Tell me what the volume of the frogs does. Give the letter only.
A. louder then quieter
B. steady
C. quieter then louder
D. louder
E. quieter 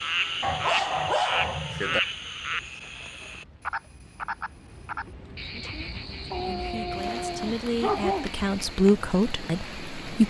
E.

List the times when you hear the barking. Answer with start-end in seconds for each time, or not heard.
0.4-2.0, 6.3-8.3.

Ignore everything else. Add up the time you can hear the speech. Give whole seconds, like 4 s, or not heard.
5 s.